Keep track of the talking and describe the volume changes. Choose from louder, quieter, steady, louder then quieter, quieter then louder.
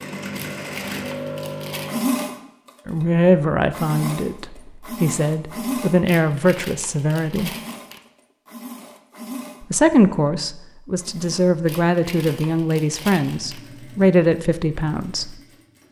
steady.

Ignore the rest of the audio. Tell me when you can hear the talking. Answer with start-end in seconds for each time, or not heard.
2.9-7.5, 9.6-15.4.